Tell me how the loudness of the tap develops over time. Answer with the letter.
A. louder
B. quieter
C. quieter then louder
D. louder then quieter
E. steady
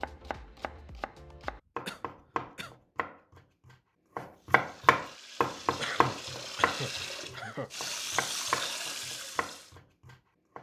A.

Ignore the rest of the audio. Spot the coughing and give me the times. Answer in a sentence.
The coughing can be heard from 1.9 to 2.8 s and from 5.8 to 7.7 s.